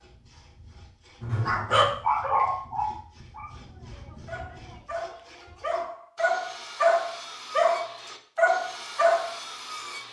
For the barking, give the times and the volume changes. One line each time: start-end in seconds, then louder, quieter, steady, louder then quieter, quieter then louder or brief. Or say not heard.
1.2-9.3 quieter then louder.